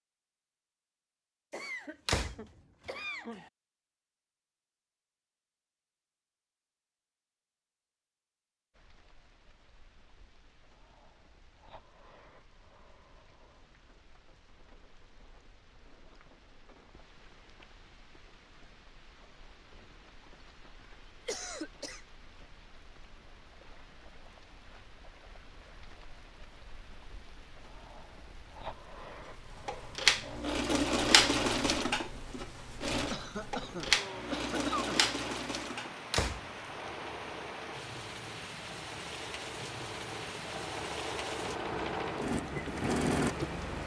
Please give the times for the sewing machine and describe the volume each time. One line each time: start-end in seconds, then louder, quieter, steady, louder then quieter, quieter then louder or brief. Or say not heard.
29.6-43.5 quieter then louder.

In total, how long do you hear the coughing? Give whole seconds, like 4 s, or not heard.
5 s.